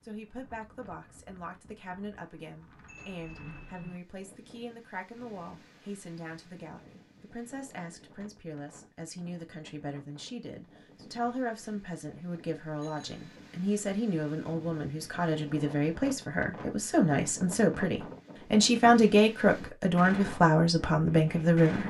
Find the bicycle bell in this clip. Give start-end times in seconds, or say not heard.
2.9-4.0, 12.8-13.4.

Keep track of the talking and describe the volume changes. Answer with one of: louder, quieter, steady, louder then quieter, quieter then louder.
louder.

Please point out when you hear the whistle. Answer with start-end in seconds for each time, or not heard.
not heard.